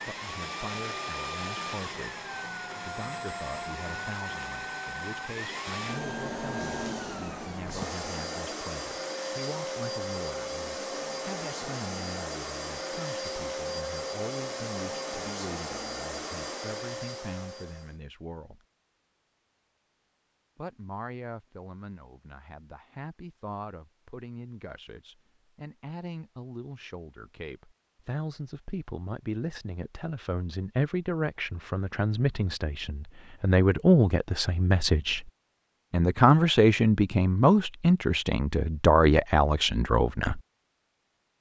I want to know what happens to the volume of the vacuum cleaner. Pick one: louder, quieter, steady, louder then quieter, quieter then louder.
steady.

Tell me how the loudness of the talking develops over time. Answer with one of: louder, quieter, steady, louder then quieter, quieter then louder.
louder.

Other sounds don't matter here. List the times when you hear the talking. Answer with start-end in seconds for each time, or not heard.
0.1-18.6, 20.6-35.3, 35.9-40.4.